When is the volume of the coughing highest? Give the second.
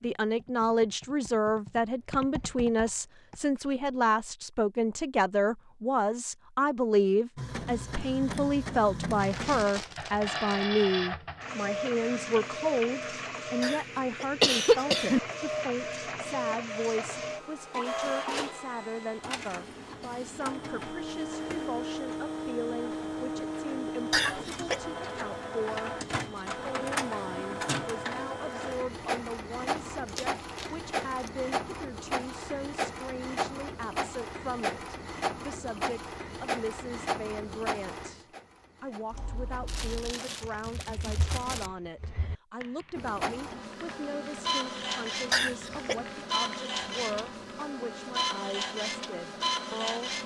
15 s.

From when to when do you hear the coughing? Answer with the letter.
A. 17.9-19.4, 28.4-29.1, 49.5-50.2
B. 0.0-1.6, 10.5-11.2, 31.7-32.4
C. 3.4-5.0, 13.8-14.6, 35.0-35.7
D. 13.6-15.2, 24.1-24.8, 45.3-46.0
D.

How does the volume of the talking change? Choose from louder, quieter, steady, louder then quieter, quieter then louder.
quieter.